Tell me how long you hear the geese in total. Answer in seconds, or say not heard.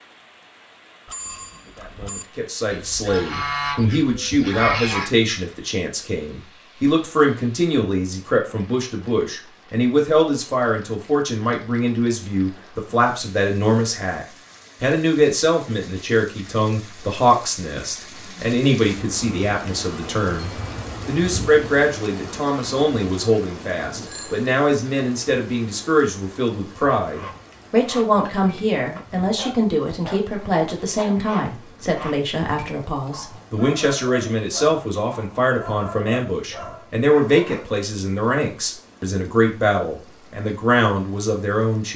3 s.